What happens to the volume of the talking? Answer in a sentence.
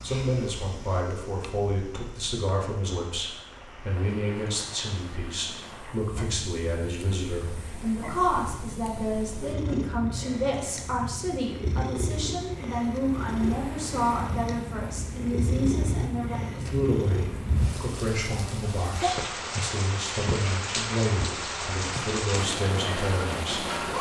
The volume of the talking stays about the same.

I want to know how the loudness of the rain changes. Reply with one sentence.
The loudness of the rain goes up.